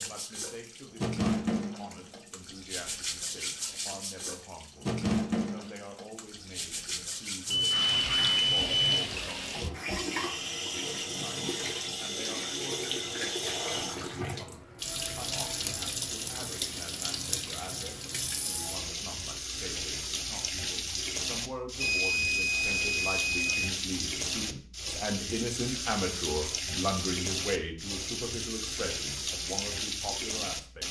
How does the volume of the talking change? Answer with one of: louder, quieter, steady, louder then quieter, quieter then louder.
louder.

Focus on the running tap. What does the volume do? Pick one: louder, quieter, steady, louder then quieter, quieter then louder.
steady.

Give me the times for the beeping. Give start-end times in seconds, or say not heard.
7.5-9.0, 21.8-23.7.